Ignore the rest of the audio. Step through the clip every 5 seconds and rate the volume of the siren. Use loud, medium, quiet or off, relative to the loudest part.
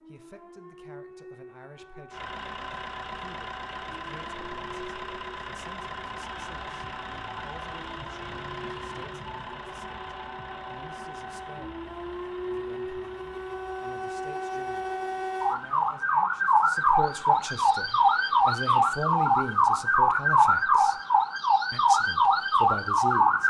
quiet, quiet, quiet, loud, loud.